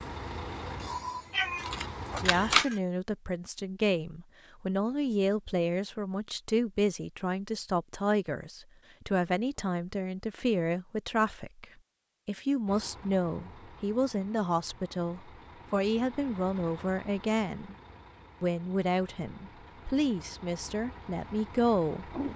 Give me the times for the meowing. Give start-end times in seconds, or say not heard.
0.8-2.8.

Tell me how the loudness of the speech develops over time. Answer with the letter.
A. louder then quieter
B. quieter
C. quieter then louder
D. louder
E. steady
E.